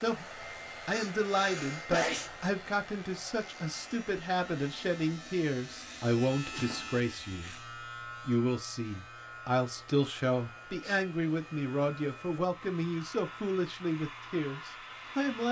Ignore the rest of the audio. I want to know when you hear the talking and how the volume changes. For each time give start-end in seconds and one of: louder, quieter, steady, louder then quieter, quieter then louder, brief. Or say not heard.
0.0-15.4 steady.